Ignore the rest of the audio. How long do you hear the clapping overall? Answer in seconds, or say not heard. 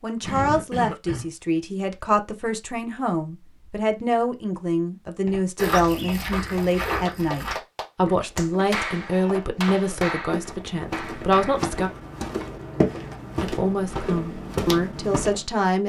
6 s.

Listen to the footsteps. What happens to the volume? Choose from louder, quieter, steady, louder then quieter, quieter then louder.
quieter then louder.